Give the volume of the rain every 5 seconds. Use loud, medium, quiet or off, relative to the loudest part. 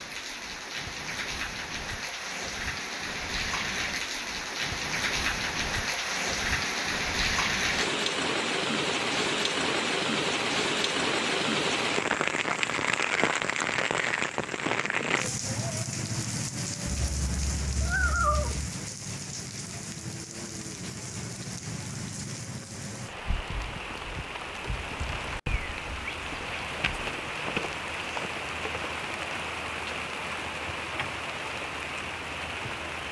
medium, loud, loud, medium, medium, medium, medium.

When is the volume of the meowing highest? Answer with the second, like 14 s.
18 s.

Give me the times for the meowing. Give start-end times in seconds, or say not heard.
16.9-18.8.